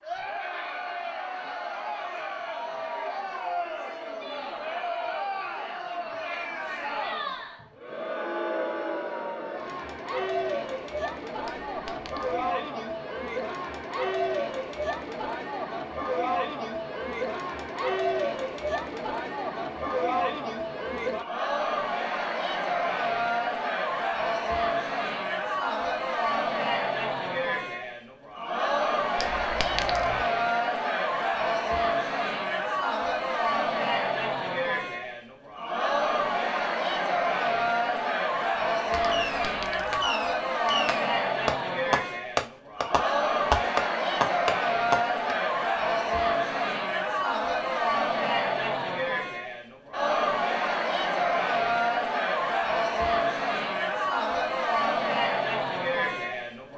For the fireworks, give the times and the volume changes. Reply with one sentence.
You can hear the fireworks from 39.0 to 45.4 s, getting louder.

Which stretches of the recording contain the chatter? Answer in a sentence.
The chatter can be heard from 0.0 to 56.7 s.